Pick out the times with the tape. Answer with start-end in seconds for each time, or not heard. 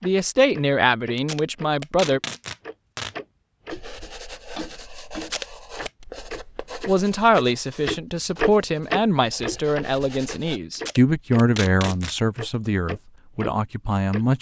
1.1-3.1, 5.2-6.0, 10.8-12.2.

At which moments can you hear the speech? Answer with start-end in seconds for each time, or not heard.
0.0-2.2, 6.8-14.3.